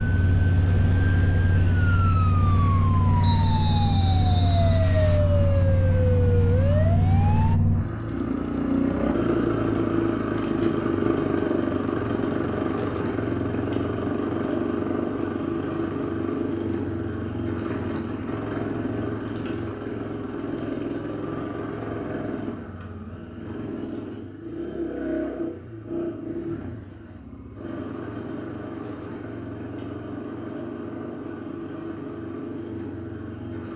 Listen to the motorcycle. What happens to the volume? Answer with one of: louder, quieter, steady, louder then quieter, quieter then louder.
quieter.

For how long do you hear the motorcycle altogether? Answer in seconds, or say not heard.
34 s.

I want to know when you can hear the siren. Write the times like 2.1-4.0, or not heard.
0.0-7.6.